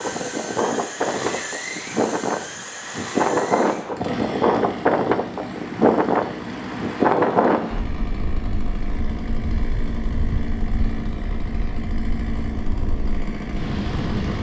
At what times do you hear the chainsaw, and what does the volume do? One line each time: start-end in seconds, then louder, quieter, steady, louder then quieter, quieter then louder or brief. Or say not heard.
0.0-14.3 steady.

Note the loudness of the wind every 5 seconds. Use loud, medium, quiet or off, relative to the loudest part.
loud, loud, quiet.